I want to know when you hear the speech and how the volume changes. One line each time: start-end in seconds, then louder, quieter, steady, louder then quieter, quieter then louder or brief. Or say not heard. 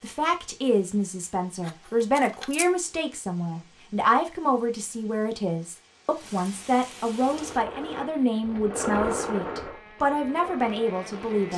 0.0-11.5 steady.